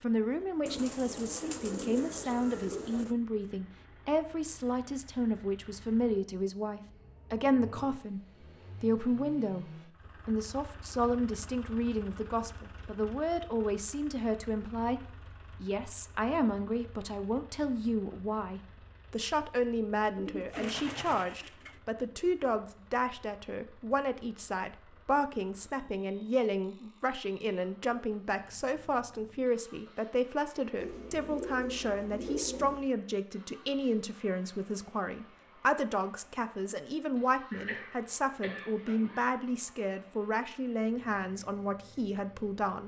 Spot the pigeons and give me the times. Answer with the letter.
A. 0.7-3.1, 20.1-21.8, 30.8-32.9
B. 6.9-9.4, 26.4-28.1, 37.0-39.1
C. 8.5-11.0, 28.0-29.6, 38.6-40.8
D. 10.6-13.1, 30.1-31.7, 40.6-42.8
A.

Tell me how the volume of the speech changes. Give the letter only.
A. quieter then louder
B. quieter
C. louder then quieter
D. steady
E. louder
D.